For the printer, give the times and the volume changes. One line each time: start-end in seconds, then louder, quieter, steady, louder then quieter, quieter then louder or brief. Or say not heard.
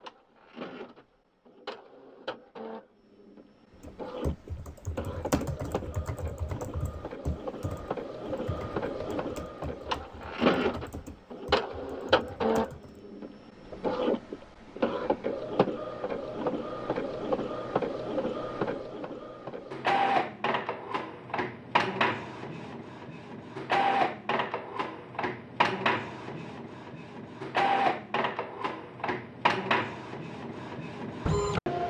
0.0-31.8 louder.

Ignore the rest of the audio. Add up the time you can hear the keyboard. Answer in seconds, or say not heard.
9 s.